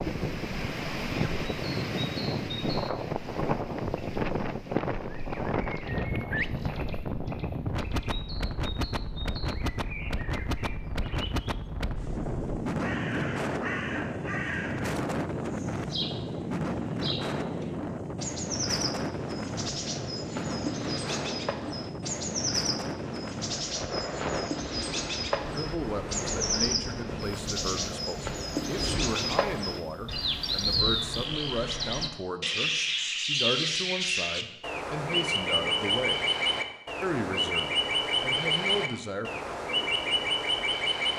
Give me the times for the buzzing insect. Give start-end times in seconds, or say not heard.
not heard.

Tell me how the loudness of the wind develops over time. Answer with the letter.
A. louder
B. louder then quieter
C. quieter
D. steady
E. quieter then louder
C.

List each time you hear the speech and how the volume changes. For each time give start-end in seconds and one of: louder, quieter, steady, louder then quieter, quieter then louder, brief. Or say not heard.
25.5-36.2 steady
37.0-39.3 brief.